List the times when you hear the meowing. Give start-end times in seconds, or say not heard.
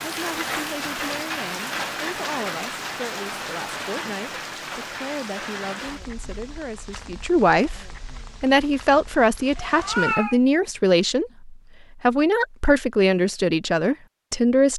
9.7-10.4.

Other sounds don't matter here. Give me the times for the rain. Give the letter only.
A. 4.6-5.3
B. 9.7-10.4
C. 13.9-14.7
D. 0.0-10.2
D.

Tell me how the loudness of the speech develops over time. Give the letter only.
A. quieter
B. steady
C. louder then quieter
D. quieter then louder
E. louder
E.